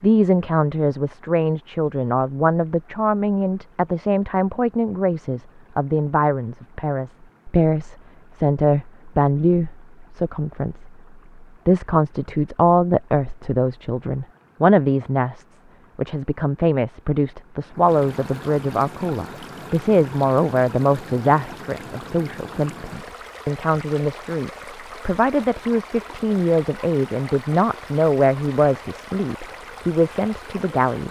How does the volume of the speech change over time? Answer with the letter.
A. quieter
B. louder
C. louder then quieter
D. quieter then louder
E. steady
E.